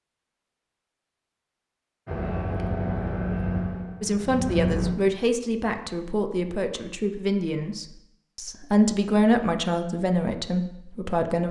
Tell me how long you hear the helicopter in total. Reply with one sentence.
The helicopter can be heard for 3 seconds in total.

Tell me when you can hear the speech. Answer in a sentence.
You can hear the speech from 4.0 to 11.4 s.